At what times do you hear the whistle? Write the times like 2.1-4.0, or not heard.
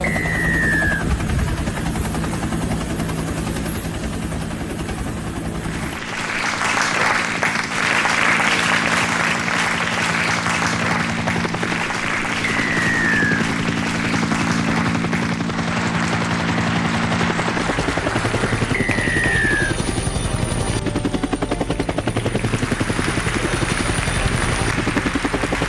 0.0-1.1, 12.6-13.4, 18.7-19.8.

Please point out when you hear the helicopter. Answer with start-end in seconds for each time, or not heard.
0.0-25.6.